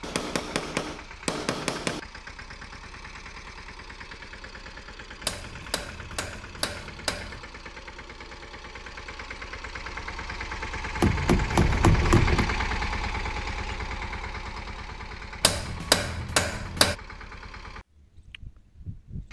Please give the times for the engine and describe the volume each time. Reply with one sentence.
The engine can be heard from 0.0 to 19.2 s, getting louder then quieter.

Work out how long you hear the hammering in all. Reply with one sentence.
You can hear the hammering for 7 seconds altogether.